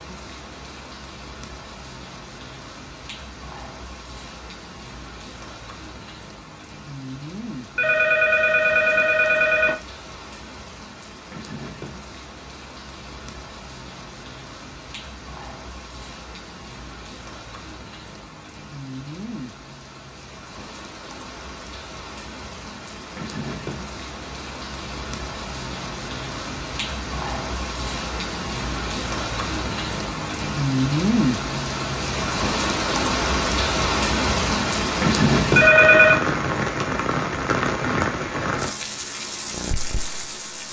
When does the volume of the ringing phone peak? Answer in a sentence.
The volume of the ringing phone peaks at 36 seconds.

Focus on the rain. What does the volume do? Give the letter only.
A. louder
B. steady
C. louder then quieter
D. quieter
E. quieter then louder
A.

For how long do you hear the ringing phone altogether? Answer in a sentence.
The ringing phone can be heard for 3 seconds in total.